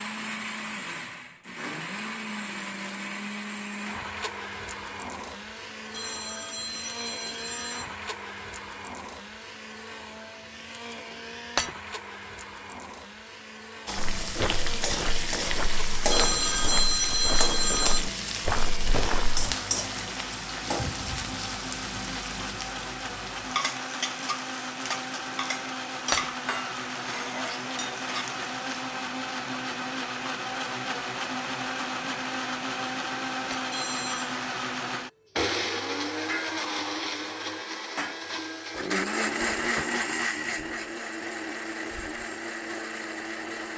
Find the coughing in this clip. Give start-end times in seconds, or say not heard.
not heard.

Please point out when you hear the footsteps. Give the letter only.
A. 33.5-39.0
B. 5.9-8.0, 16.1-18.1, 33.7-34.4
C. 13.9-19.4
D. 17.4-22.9
C.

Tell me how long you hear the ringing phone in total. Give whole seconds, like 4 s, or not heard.
5 s.